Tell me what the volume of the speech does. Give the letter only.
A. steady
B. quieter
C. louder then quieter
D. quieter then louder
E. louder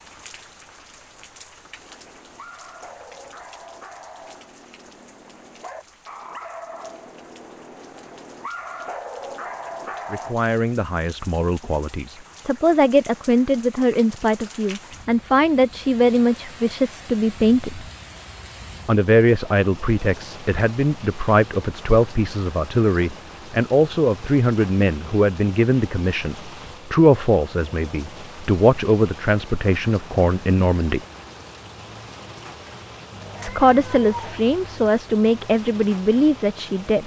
A.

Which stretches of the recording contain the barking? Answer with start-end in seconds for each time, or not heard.
1.8-10.3.